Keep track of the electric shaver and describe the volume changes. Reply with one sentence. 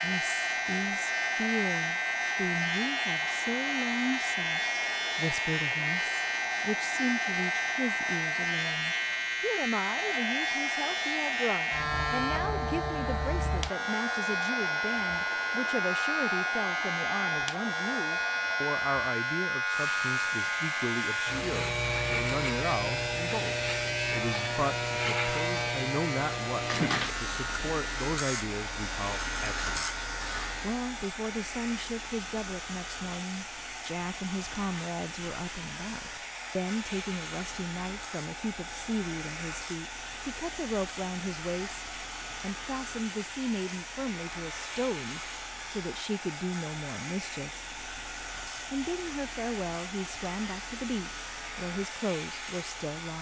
The volume of the electric shaver goes down.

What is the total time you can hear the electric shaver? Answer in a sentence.
You can hear the electric shaver for 53 seconds altogether.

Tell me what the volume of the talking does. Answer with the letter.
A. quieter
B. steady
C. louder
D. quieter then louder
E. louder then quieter
B.